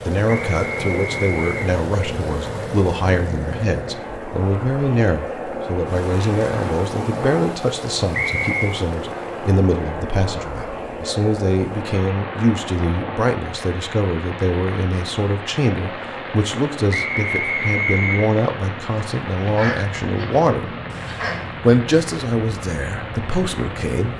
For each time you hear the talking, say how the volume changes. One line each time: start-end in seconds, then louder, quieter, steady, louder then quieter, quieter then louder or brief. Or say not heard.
0.1-24.1 steady.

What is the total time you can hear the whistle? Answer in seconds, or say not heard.
3 s.